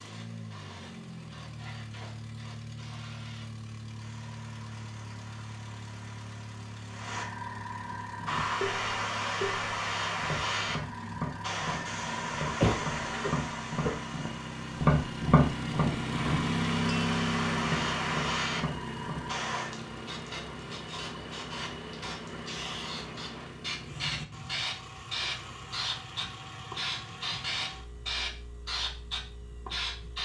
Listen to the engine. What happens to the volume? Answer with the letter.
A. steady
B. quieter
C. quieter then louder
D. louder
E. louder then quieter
E.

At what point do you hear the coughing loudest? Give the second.
13 s.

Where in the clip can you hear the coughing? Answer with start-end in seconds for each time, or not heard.
12.4-14.0.